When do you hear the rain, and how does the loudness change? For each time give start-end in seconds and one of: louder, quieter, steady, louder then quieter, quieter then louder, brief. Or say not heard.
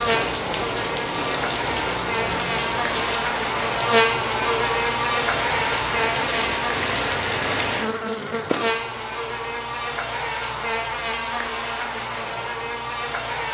0.0-7.9 quieter then louder.